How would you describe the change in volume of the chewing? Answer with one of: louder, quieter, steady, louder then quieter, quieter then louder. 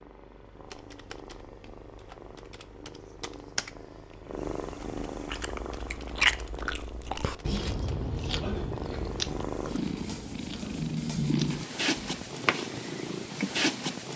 quieter.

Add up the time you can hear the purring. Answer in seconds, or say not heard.
14 s.